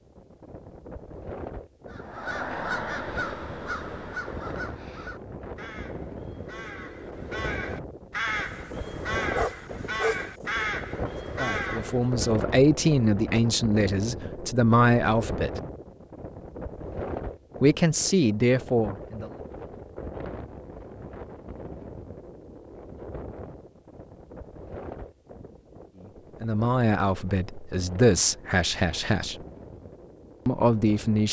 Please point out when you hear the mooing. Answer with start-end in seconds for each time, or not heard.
not heard.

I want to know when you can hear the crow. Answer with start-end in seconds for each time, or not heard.
1.9-12.3.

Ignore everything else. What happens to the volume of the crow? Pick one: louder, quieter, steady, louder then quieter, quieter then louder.
quieter then louder.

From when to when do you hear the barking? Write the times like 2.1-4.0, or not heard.
8.3-10.7.